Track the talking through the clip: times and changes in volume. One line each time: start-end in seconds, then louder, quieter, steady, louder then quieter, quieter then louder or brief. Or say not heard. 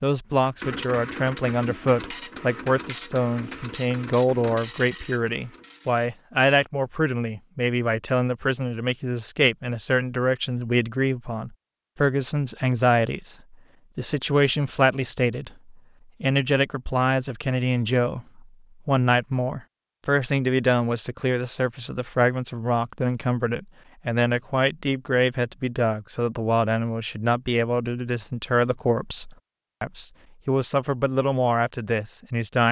0.0-32.6 steady.